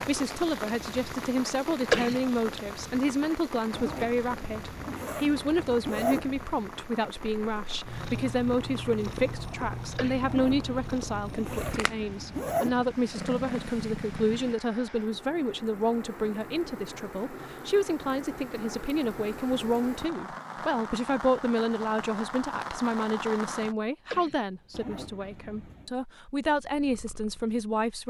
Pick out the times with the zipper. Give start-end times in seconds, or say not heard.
3.7-6.5, 10.2-12.8, 24.7-25.9.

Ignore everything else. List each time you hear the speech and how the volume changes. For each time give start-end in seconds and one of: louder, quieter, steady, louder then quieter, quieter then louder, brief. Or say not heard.
0.0-28.0 steady.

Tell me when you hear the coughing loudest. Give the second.
2 s.